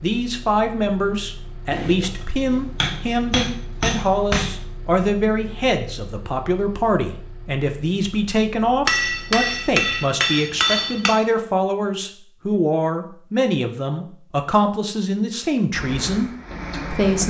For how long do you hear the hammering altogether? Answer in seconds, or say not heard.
5 s.